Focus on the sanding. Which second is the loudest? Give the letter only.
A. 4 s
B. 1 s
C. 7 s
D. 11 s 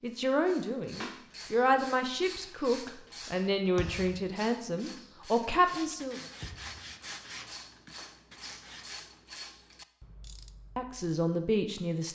C.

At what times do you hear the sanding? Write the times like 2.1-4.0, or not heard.
5.7-9.1.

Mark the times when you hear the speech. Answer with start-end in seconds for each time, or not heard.
0.0-6.2, 10.8-12.1.